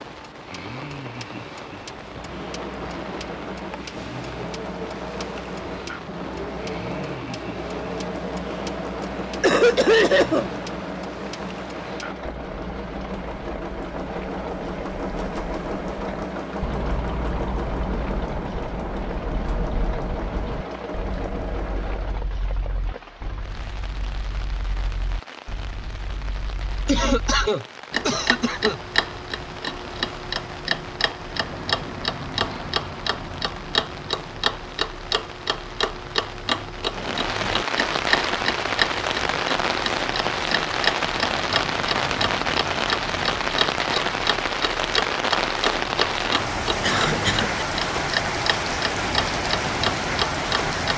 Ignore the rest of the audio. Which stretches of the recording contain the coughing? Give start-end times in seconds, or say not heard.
9.4-10.5, 26.9-28.8, 46.8-47.6.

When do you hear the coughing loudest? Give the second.
10 s.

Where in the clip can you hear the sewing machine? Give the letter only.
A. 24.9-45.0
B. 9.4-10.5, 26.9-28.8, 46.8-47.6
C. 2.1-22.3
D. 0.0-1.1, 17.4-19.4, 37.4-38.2
C.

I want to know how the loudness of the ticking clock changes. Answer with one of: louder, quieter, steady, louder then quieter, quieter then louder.
louder.